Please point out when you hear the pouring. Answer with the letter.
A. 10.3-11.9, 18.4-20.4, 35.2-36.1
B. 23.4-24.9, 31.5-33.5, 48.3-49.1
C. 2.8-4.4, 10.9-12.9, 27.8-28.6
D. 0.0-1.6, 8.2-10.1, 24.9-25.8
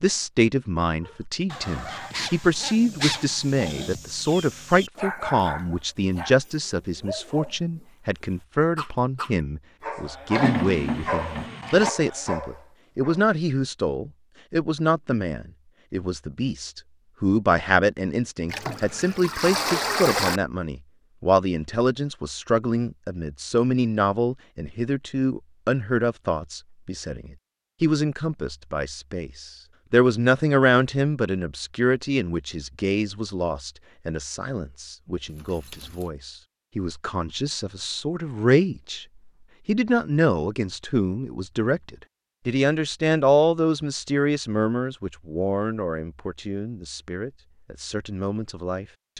A.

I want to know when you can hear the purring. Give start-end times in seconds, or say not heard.
not heard.